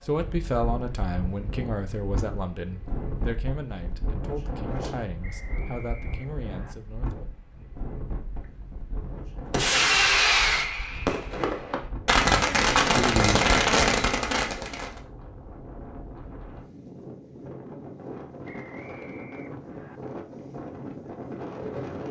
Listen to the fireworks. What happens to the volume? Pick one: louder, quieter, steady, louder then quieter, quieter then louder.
quieter then louder.